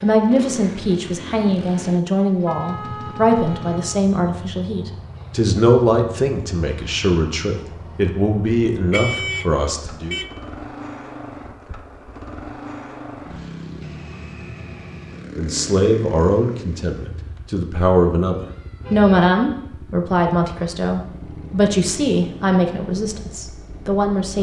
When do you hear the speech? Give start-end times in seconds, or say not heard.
0.0-10.2, 15.3-24.3.